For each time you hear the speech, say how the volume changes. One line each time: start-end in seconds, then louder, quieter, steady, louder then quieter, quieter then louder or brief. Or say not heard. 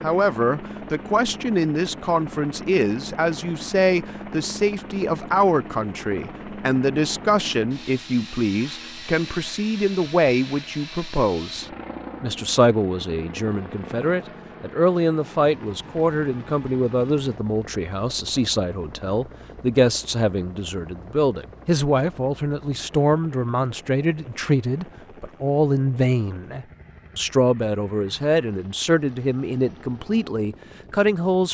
0.0-31.5 steady.